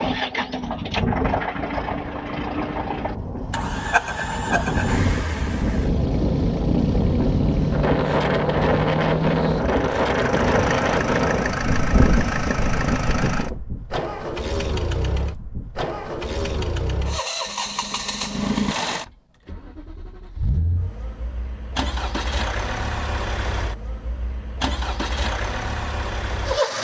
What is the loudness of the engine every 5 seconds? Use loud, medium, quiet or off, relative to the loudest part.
loud, loud, loud, loud, medium, loud.